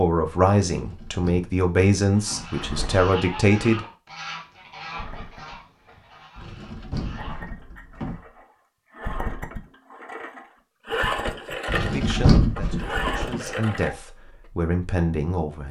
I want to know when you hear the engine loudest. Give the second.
11 s.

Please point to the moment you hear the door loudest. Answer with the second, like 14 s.
12 s.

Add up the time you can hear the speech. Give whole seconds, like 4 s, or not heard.
8 s.